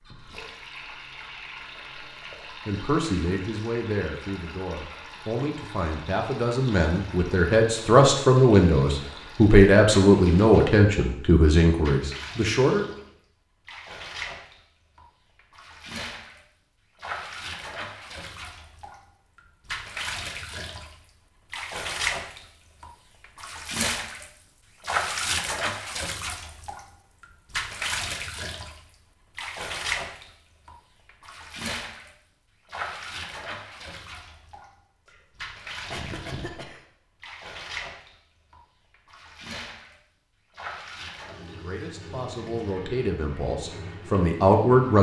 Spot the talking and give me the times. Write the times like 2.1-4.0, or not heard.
2.6-12.8, 41.2-44.9.